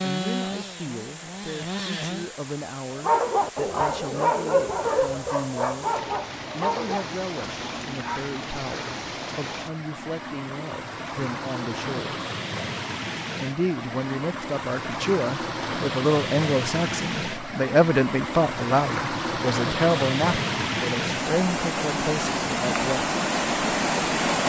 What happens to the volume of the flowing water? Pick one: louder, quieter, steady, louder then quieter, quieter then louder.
louder.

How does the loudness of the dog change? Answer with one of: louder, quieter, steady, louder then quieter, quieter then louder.
quieter.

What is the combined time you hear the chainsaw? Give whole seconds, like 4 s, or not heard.
2 s.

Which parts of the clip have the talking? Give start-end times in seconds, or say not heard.
0.0-12.2, 13.4-23.1.